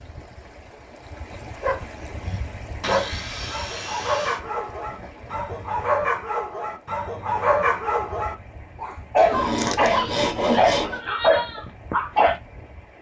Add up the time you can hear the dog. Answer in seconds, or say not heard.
11 s.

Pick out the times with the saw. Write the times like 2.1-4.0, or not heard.
2.8-4.4, 9.3-11.0.